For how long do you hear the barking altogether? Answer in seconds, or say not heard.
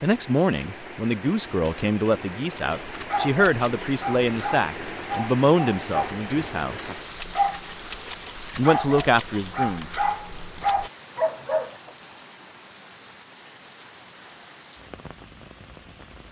9 s.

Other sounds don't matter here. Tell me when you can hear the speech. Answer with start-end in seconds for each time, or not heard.
0.0-7.0, 8.6-9.8.